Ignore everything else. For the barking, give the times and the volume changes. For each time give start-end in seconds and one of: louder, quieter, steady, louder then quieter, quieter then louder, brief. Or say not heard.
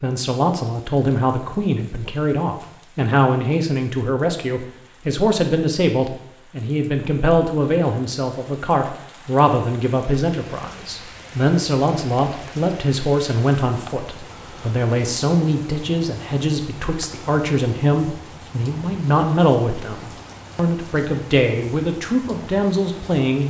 not heard.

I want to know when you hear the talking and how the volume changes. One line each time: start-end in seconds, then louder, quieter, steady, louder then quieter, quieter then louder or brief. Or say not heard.
0.0-23.4 steady.